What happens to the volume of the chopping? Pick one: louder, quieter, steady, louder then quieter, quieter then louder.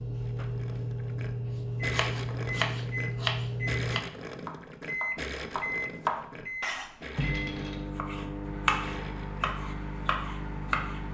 steady.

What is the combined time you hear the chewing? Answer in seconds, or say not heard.
not heard.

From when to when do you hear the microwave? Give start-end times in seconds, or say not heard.
0.0-11.1.